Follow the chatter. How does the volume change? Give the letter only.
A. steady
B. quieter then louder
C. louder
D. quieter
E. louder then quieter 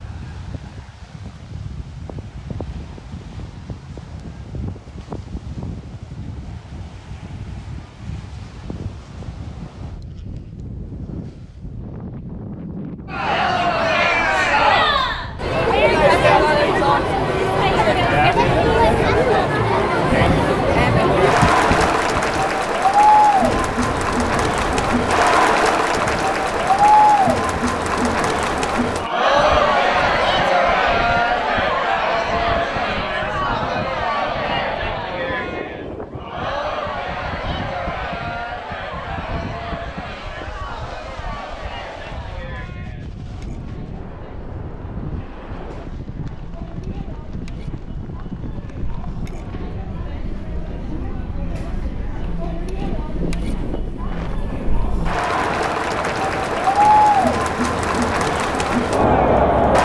B.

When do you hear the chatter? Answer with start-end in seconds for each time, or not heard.
13.1-59.7.